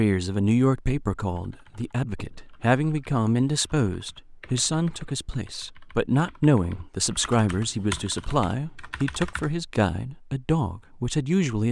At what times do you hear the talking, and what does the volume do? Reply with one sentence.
The talking can be heard from 0.0 to 11.6 s, at a steady volume.